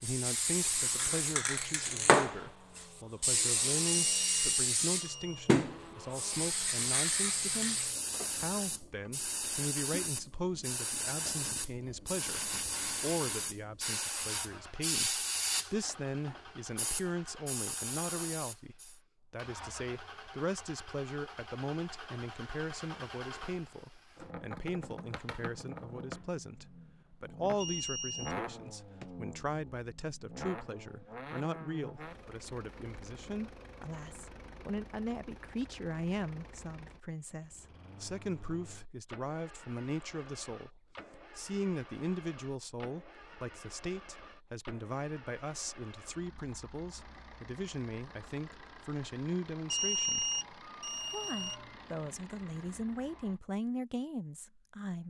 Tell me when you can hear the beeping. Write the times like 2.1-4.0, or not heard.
3.9-5.5, 27.6-28.4, 49.7-51.9.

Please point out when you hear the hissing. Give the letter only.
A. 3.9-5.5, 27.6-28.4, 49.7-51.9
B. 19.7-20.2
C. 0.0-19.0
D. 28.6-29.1
C.